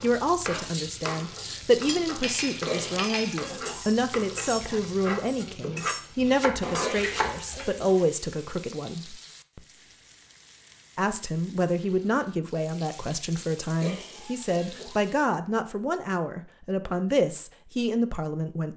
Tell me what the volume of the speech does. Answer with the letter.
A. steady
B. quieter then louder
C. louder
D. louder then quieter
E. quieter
A.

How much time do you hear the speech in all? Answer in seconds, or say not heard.
17 s.